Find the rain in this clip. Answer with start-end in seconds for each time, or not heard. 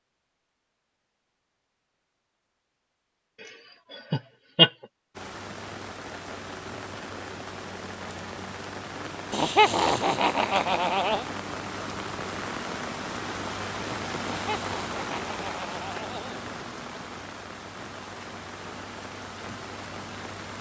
5.2-20.5.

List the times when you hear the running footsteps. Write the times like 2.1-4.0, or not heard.
not heard.